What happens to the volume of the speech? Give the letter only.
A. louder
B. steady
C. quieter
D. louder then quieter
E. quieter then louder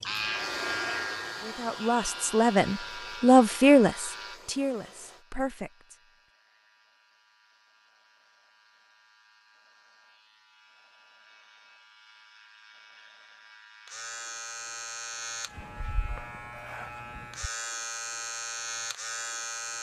D.